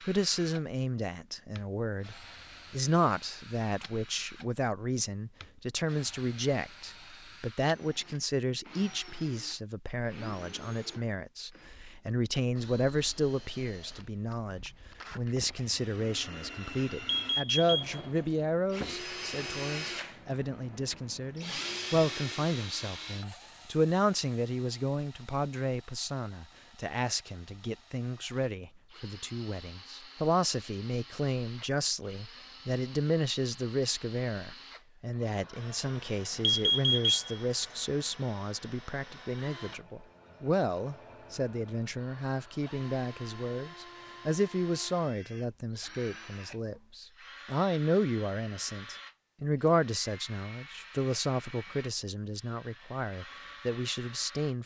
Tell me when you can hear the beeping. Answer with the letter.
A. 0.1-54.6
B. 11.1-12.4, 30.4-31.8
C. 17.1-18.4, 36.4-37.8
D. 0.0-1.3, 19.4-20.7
C.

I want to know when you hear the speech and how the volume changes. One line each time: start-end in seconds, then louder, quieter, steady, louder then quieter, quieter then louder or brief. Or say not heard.
0.1-54.6 steady.